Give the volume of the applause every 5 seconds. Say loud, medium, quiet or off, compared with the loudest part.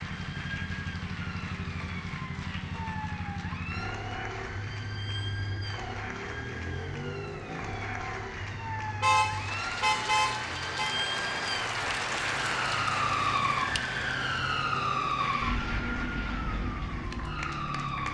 medium, medium, loud, medium.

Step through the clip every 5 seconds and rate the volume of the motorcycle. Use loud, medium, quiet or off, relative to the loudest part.
loud, loud, medium, loud.